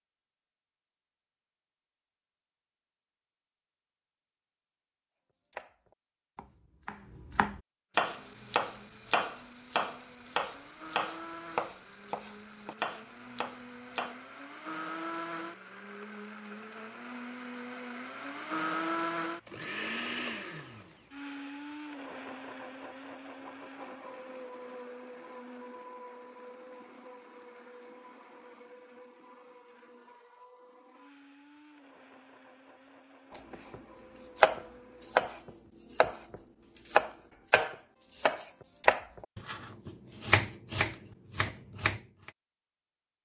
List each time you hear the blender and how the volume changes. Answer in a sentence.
You can hear the blender from 8.1 to 35.3 s, getting louder then quieter.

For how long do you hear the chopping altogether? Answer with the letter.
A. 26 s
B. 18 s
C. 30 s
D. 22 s
B.